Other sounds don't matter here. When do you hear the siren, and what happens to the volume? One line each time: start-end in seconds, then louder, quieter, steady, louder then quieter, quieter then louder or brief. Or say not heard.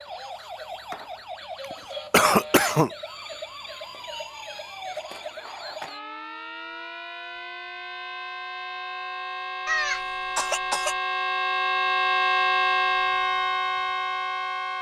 0.0-14.7 louder.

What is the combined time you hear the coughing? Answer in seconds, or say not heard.
2 s.